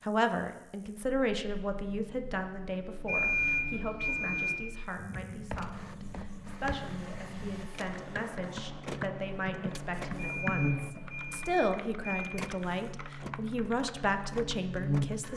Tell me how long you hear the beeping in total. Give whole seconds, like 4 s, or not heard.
4 s.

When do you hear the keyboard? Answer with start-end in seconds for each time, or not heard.
5.0-14.6.